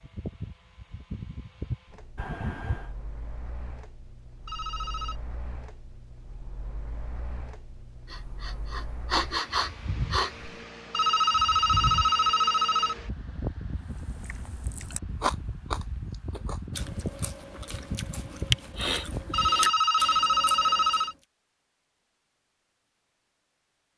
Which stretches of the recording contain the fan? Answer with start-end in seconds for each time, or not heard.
0.0-19.5.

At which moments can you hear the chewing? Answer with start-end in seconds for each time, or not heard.
13.8-21.1.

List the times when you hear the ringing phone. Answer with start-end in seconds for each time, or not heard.
4.5-5.2, 10.9-12.9, 19.3-21.1.